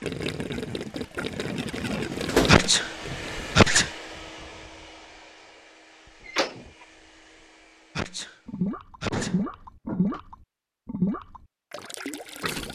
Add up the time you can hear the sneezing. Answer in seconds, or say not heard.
3 s.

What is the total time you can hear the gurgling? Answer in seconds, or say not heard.
8 s.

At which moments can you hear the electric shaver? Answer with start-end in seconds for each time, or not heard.
not heard.